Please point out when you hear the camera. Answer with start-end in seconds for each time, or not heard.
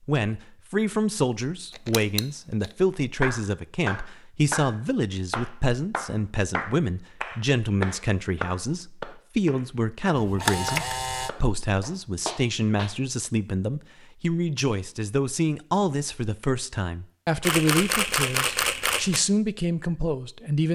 1.7-2.7, 10.2-11.3, 17.4-19.2.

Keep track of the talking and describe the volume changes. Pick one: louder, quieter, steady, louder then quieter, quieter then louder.
steady.